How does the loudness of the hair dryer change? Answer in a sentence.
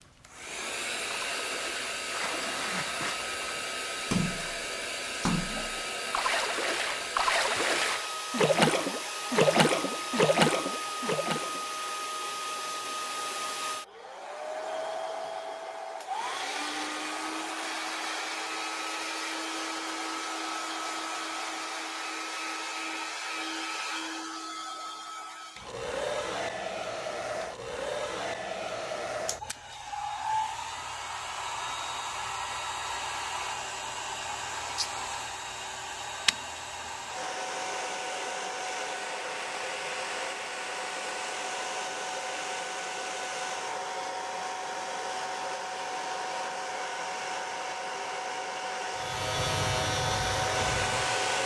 The volume of the hair dryer stays about the same.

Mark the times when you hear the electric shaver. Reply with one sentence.
The electric shaver can be heard from 49.0 to 51.4 s.